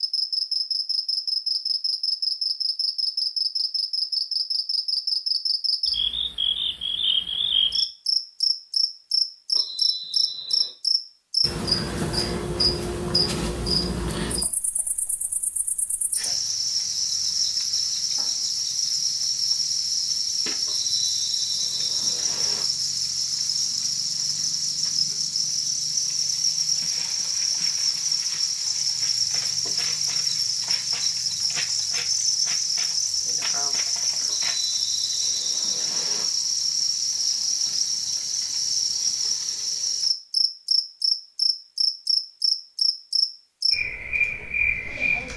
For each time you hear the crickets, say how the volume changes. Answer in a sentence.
The crickets can be heard from 0.0 to 45.3 s, at a steady volume.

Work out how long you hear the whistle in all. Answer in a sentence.
You can hear the whistle for 5 seconds altogether.